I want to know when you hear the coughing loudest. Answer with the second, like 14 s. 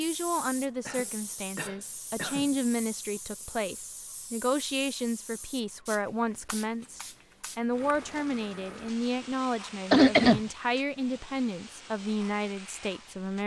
10 s.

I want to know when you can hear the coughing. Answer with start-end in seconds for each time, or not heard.
0.8-2.5, 9.9-10.4.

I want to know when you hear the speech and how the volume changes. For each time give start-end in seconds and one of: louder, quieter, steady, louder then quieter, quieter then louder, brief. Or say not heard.
0.0-13.4 steady.